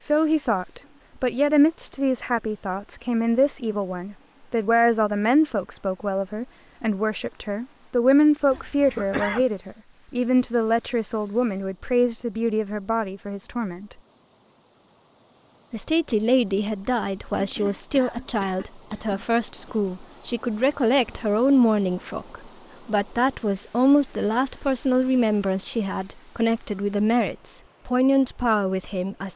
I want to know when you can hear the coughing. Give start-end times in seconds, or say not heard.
8.5-9.4, 17.3-19.8.